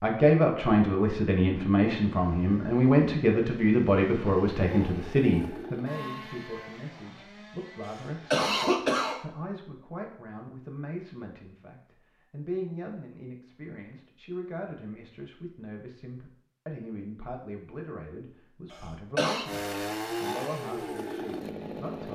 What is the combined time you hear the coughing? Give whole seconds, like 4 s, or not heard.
2 s.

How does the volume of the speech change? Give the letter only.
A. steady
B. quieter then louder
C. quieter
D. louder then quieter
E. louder
C.